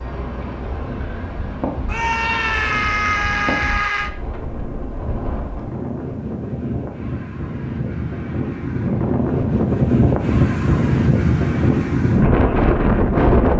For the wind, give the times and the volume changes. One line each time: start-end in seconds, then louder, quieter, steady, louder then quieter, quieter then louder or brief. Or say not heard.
0.0-13.5 louder.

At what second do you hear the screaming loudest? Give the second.
3 s.